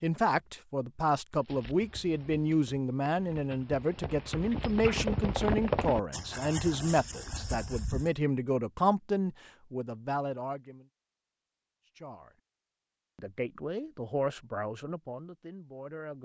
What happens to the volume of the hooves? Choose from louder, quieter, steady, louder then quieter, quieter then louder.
louder then quieter.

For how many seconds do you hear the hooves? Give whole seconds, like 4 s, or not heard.
7 s.